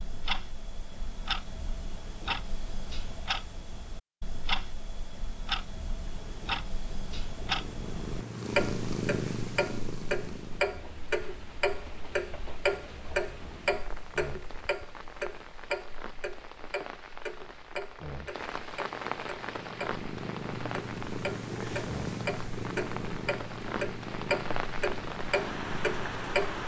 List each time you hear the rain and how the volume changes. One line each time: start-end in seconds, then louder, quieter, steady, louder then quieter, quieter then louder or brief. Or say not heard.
10.2-26.6 louder.